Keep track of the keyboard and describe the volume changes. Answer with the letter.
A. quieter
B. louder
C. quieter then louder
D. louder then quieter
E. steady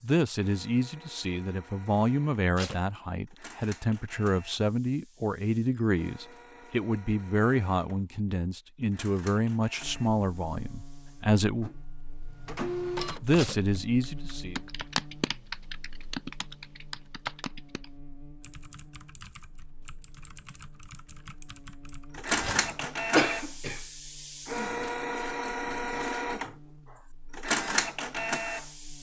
A.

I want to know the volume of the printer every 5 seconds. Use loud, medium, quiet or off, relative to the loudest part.
quiet, quiet, medium, off, loud, loud.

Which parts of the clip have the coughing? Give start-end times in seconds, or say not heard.
22.4-23.8.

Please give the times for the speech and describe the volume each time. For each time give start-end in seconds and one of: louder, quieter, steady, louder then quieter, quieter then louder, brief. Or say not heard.
0.0-11.7 steady
13.2-14.6 brief.